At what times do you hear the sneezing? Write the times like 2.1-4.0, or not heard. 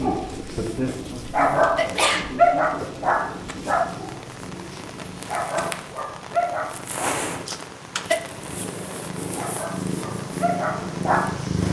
1.1-2.3, 7.5-8.2.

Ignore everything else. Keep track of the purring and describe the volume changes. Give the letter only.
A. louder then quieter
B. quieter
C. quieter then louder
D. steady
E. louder
E.